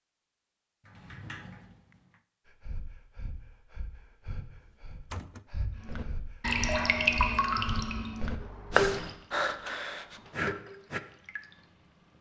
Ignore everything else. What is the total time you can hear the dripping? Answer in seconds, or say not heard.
6 s.